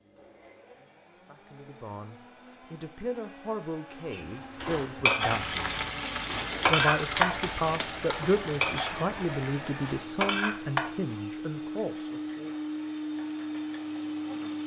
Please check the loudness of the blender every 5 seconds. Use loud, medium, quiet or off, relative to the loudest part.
quiet, medium, loud.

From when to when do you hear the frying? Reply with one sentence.
You can hear the frying from 5.2 to 14.6 s.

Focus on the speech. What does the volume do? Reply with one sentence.
The loudness of the speech goes up, then down.